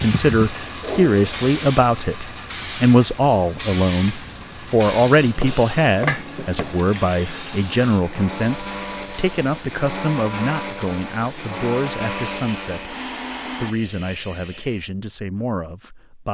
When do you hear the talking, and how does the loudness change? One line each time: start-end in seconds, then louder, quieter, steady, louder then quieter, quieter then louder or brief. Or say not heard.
0.0-16.3 quieter.